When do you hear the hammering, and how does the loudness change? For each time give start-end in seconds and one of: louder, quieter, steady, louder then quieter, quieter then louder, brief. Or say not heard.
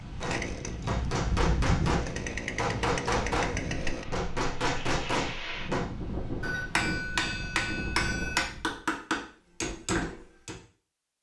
0.2-10.6 steady.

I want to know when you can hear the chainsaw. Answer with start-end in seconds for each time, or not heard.
0.0-4.0.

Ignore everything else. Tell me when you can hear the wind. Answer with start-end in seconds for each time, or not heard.
0.0-8.8.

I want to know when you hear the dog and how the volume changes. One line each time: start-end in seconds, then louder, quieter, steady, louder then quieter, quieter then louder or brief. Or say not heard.
not heard.